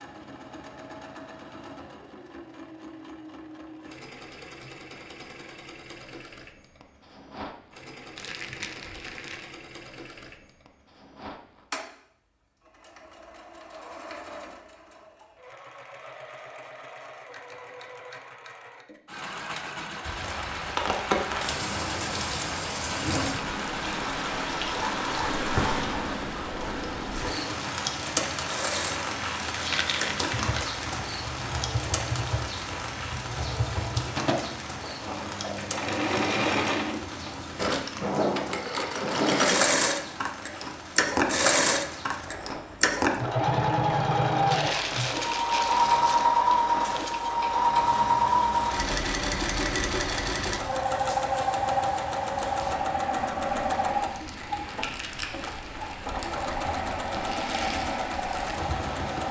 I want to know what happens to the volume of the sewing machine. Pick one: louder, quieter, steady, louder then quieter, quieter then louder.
louder.